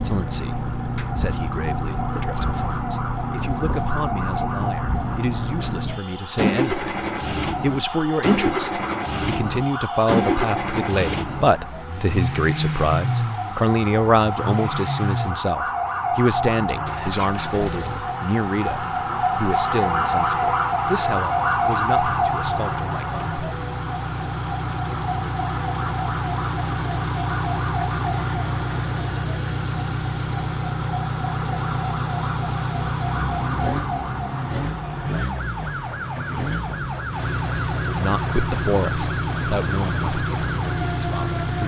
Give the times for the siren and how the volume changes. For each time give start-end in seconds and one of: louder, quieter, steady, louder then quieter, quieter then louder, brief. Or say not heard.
0.0-41.6 louder then quieter.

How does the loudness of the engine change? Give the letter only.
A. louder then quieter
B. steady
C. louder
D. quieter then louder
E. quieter
D.